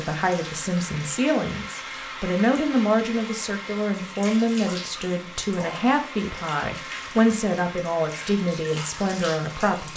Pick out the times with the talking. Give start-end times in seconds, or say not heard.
0.0-9.9.